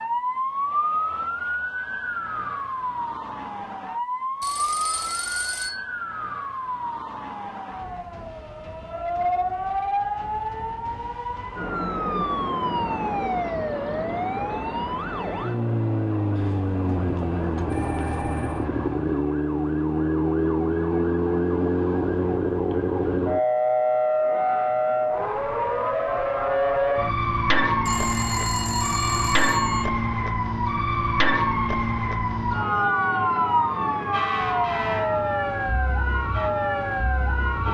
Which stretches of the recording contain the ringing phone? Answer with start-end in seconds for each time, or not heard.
4.4-5.8, 16.4-18.6, 27.9-29.9.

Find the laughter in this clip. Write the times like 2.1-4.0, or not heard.
not heard.